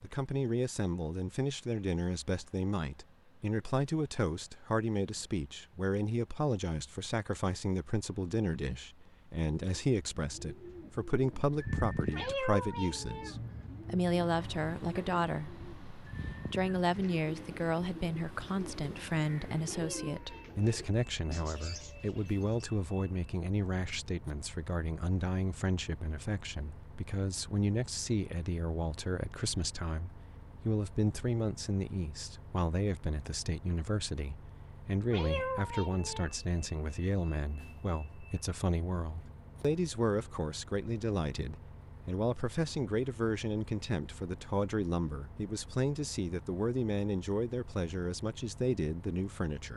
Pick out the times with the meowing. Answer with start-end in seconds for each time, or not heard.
12.1-13.3, 19.6-20.6, 35.1-36.3.